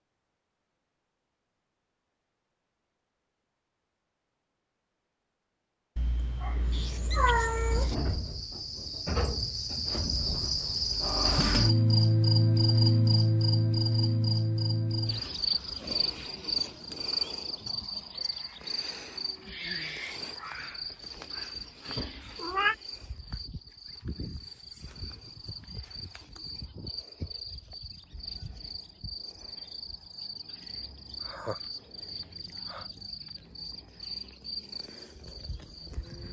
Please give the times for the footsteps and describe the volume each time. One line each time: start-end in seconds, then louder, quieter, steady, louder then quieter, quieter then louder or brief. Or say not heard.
not heard.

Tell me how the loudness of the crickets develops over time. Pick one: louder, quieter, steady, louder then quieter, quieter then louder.
quieter.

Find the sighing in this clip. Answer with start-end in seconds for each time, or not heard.
31.2-33.3.